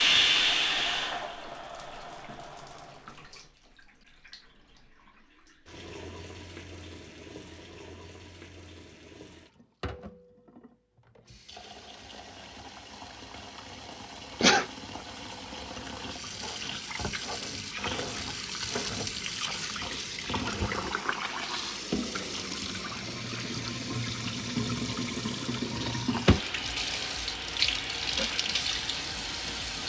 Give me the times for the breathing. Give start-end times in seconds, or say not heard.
not heard.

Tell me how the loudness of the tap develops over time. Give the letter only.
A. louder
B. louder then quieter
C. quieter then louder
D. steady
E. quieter
C.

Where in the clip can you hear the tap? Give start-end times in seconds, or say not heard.
0.0-29.8.